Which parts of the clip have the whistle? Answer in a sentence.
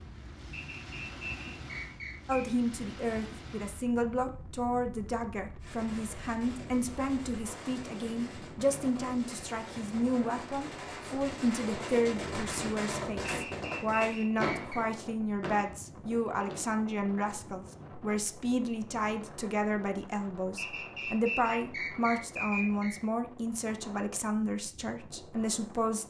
You can hear the whistle from 0.5 to 2.5 s, from 13.2 to 14.8 s and from 20.6 to 23.0 s.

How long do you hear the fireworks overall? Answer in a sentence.
The fireworks can be heard for 11 seconds in total.